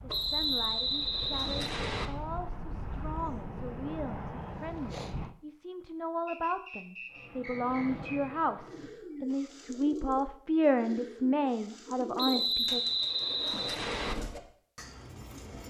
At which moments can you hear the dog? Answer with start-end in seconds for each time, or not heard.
not heard.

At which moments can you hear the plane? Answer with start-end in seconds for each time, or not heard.
0.0-5.3, 7.0-8.9.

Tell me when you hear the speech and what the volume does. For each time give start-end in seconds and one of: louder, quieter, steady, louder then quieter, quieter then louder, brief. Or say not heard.
0.0-12.8 louder.